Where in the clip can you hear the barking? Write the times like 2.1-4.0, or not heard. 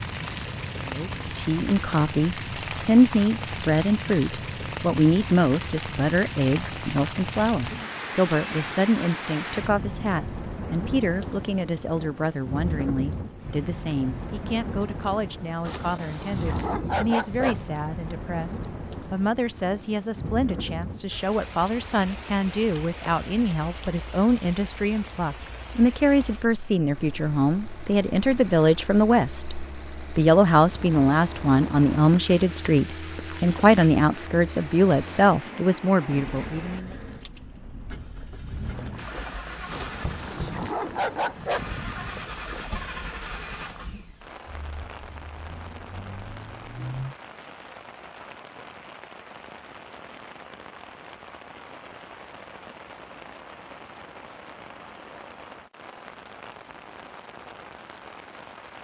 15.6-17.7, 39.7-42.3.